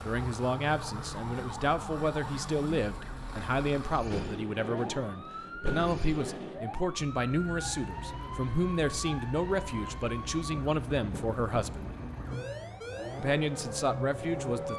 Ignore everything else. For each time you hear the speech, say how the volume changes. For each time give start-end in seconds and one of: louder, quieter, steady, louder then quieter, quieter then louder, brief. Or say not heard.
0.0-11.9 steady
13.2-14.7 brief.